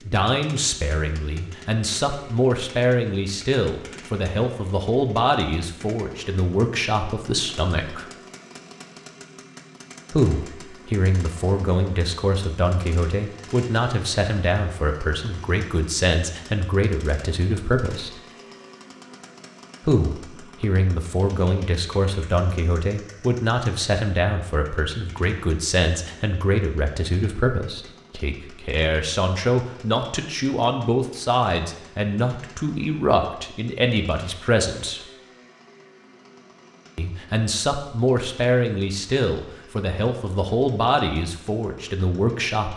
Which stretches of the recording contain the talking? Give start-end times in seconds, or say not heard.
0.0-8.1, 10.1-18.2, 19.9-35.0, 37.0-42.7.